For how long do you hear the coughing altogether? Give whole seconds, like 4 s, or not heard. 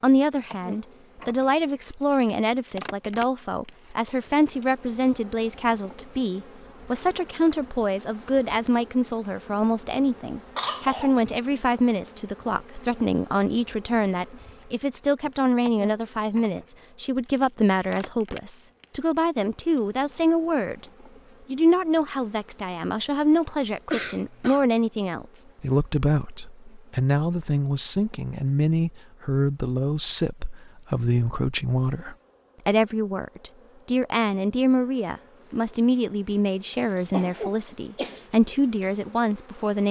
3 s.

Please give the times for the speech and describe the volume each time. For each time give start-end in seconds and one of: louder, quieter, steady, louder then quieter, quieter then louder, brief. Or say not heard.
0.0-20.9 steady
21.5-39.8 steady.